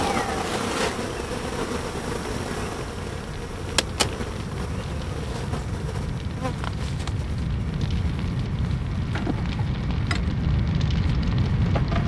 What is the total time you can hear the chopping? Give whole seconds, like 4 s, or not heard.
not heard.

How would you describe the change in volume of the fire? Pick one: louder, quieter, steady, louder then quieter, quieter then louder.
louder.